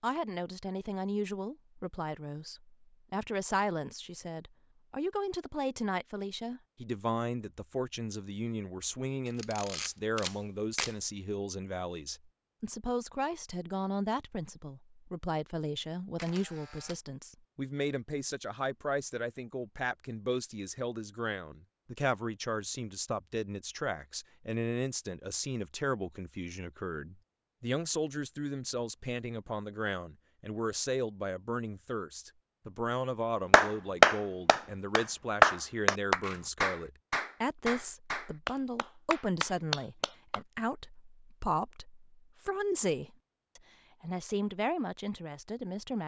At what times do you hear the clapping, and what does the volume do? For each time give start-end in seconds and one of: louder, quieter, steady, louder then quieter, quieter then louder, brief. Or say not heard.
33.5-40.4 quieter.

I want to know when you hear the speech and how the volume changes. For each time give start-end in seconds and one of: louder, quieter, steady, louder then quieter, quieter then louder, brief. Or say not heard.
0.0-46.0 steady.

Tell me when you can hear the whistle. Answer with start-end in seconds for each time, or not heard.
not heard.